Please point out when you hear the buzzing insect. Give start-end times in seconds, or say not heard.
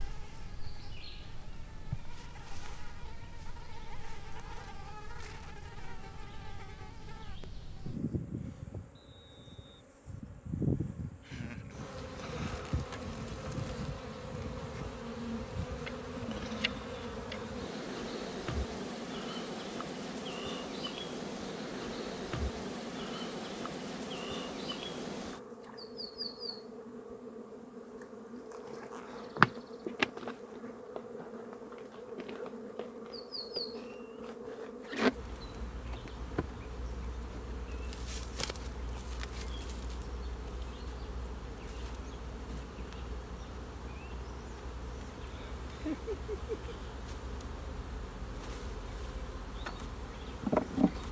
0.0-51.0.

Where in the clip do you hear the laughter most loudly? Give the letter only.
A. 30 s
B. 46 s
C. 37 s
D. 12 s
B.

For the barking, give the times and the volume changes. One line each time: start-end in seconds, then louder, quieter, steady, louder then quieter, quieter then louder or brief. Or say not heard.
not heard.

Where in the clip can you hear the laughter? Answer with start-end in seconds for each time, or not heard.
11.2-11.8, 45.2-46.8.